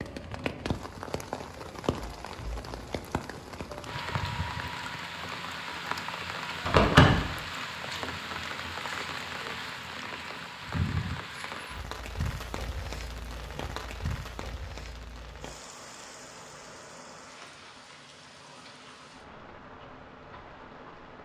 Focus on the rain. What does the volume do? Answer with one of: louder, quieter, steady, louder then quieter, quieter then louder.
quieter.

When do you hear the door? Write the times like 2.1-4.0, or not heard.
6.7-7.2.